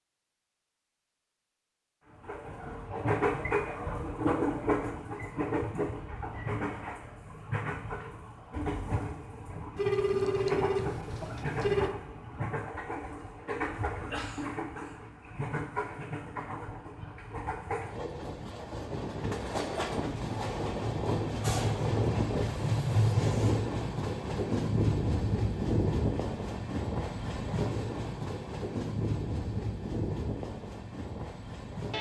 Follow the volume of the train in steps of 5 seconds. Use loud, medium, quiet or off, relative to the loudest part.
loud, medium, medium, medium, loud, loud, medium.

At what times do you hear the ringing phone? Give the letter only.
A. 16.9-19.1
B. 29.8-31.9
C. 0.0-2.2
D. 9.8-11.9
D.